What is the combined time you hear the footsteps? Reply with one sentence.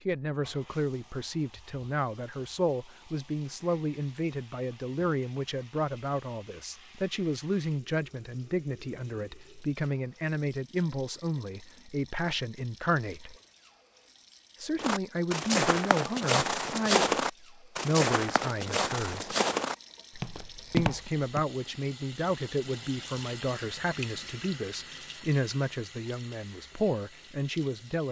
The footsteps can be heard for 7 seconds in total.